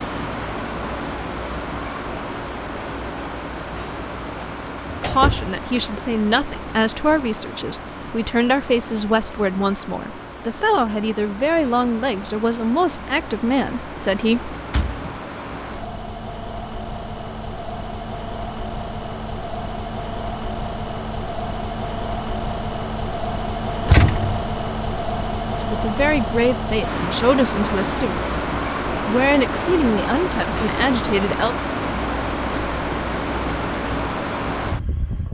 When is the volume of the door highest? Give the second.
24 s.